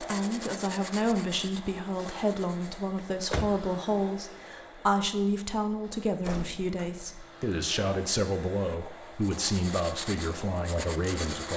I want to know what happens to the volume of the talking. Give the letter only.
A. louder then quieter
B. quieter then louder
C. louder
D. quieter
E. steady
E.